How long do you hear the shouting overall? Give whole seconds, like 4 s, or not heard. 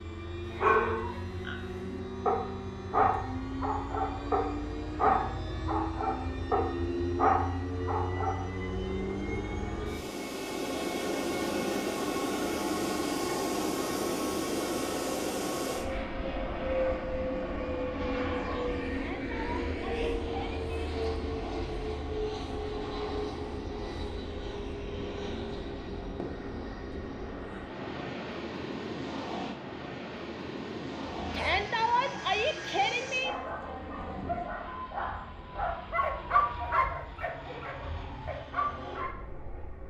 5 s.